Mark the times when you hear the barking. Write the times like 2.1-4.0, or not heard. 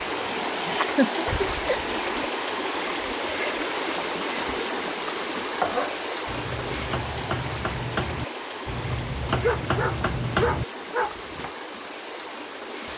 1.2-2.3, 9.4-11.2.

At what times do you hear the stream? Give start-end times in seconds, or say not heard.
0.0-12.9.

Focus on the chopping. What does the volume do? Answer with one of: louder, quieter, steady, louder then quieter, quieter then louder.
louder.